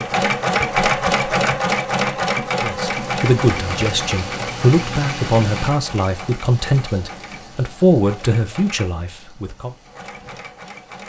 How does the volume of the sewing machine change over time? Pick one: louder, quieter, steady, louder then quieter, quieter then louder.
quieter.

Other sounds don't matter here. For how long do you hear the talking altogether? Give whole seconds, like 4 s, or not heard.
7 s.